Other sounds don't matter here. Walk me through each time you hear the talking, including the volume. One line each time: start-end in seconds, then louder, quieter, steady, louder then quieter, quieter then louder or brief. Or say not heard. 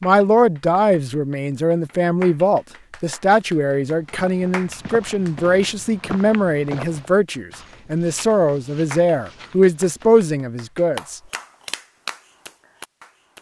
0.0-11.2 steady.